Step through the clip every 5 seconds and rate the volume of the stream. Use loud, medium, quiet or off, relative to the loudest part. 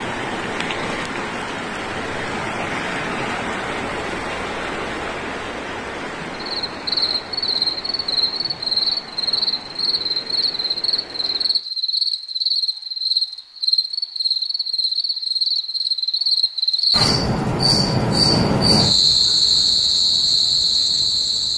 loud, medium, quiet, off, off.